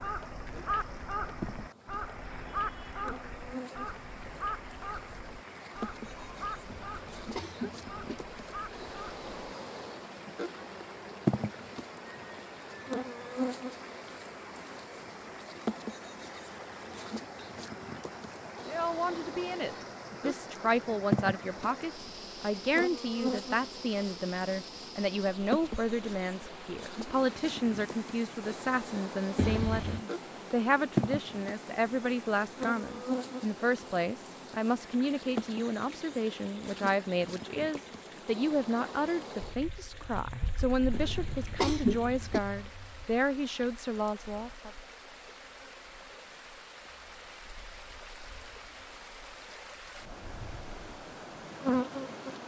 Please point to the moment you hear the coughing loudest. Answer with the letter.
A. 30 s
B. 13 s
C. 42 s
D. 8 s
C.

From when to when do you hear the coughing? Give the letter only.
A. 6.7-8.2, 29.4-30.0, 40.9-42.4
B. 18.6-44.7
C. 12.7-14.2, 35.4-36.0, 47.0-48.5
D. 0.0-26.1
A.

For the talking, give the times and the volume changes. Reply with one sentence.
You can hear the talking from 18.6 to 44.7 s, at a steady volume.